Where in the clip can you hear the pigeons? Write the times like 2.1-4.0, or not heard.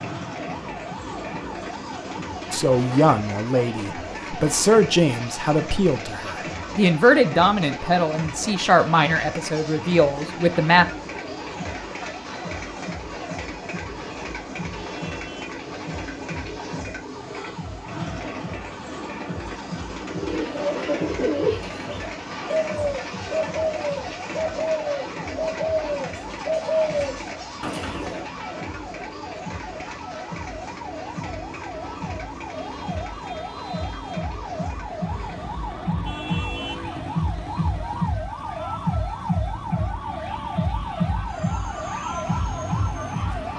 20.1-28.3.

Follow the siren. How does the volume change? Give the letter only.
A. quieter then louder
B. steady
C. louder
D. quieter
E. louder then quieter
C.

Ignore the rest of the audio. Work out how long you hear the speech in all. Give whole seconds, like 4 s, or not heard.
8 s.